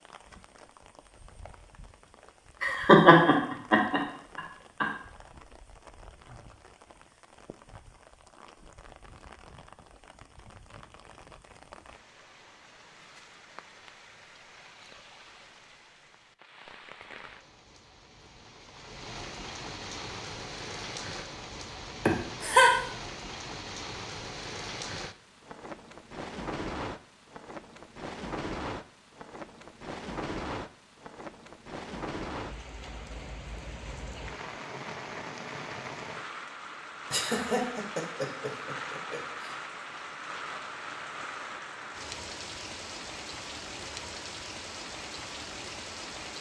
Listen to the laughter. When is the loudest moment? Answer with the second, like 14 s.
3 s.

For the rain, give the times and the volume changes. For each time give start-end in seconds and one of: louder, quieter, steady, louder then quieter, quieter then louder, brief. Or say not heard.
0.0-46.3 louder.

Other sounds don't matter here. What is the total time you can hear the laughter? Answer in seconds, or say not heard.
5 s.